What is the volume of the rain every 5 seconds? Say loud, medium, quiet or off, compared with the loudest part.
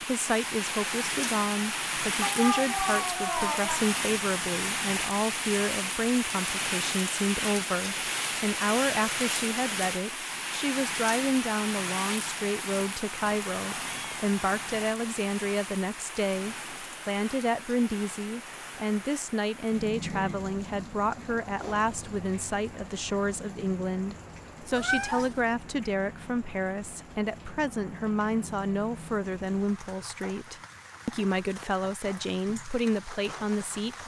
loud, loud, loud, medium, medium, quiet, quiet.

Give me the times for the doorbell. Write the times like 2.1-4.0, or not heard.
not heard.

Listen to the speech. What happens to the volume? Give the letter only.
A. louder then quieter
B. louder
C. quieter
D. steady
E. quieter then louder
D.